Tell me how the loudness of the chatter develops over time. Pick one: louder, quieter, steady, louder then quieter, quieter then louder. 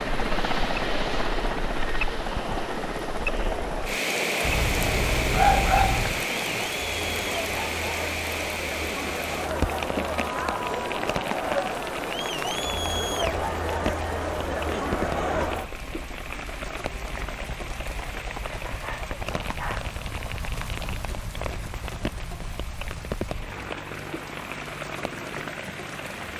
louder.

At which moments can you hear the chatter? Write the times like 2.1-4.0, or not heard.
0.2-15.7.